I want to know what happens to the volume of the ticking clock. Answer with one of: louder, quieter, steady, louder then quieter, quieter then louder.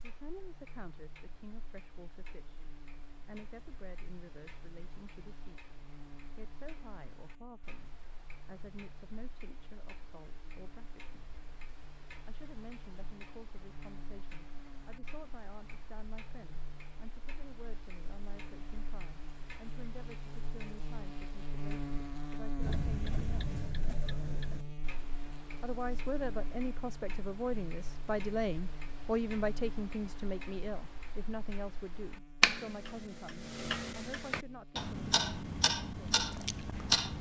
louder.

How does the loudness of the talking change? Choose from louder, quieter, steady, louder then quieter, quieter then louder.
louder.